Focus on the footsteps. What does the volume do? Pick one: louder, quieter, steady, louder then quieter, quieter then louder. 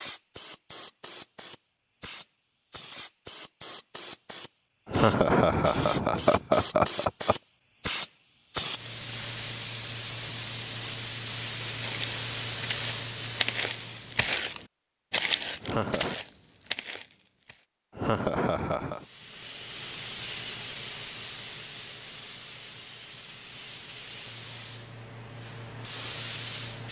louder then quieter.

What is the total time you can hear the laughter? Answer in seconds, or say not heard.
4 s.